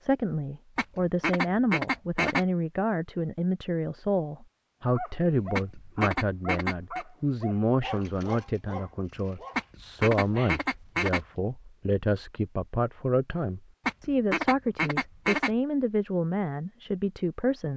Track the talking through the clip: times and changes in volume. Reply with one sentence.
You can hear the talking from 0.0 to 17.7 s, at a steady volume.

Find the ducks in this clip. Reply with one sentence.
You can hear the ducks from 0.8 to 2.5 s, from 5.5 to 7.0 s, from 9.6 to 11.2 s and from 13.8 to 15.5 s.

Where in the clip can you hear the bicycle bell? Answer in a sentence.
The bicycle bell can't be heard in this clip.